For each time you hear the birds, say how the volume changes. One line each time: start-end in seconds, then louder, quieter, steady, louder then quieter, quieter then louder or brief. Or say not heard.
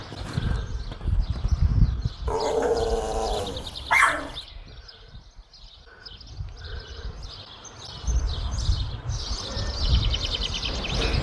0.0-11.1 quieter then louder.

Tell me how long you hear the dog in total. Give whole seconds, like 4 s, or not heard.
2 s.